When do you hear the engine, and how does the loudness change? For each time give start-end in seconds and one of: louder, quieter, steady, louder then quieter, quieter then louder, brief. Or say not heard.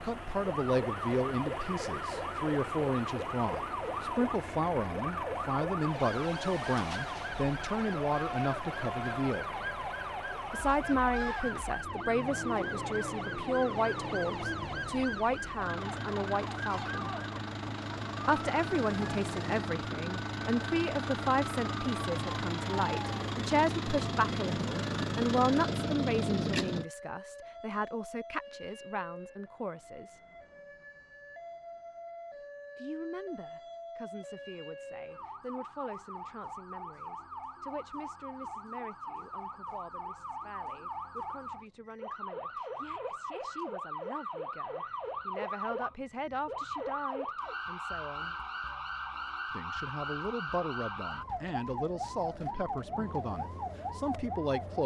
0.0-26.9 louder.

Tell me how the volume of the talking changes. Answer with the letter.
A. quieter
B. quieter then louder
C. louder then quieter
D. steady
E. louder
B.